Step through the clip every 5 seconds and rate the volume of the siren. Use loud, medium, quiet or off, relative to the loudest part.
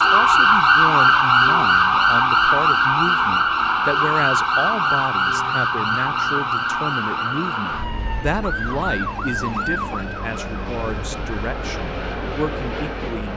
loud, medium, quiet.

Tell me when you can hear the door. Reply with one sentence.
You can't hear the door here.